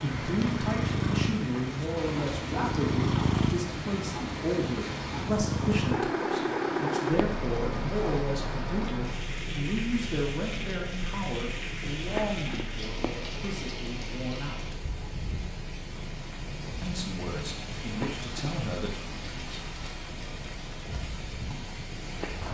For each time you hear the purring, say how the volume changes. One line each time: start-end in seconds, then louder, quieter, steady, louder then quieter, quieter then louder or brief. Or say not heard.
0.0-22.4 quieter.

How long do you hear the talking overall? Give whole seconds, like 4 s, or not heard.
18 s.